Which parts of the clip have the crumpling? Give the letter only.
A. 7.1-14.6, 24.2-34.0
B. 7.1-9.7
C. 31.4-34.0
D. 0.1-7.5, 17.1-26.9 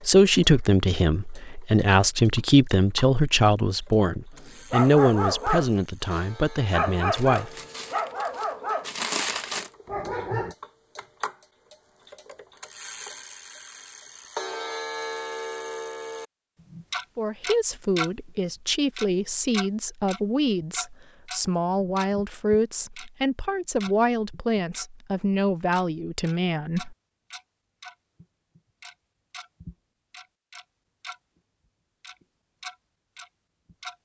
B.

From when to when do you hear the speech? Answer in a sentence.
You can hear the speech from 0.1 to 7.5 s and from 17.1 to 26.9 s.